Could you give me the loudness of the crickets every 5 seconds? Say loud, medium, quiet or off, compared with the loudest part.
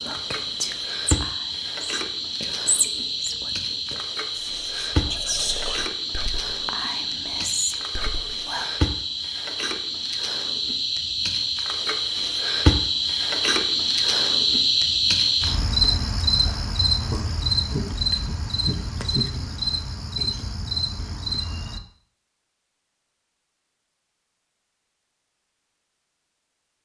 medium, medium, loud, loud, medium, off.